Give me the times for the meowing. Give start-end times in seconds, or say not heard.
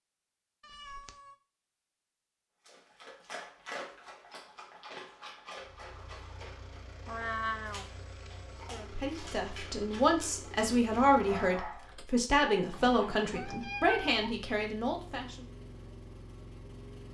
0.6-1.4, 7.0-8.3, 13.2-14.3.